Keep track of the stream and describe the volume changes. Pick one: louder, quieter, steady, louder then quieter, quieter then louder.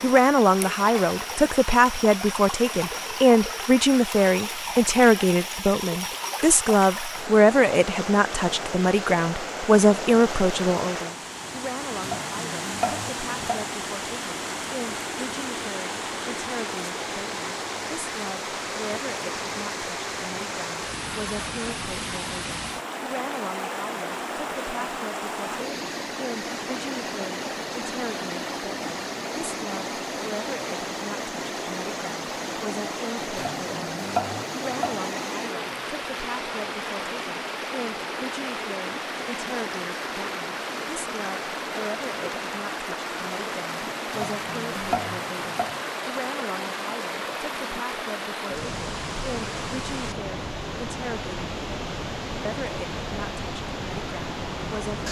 steady.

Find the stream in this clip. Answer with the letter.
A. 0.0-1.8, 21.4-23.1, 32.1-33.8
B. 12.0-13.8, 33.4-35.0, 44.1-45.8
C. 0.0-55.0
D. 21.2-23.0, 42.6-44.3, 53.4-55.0
C.